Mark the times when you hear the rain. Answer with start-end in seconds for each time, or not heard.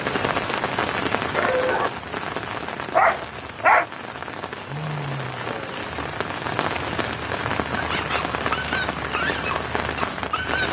0.0-10.6.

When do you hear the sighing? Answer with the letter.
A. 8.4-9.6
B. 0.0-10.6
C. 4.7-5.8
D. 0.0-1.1
C.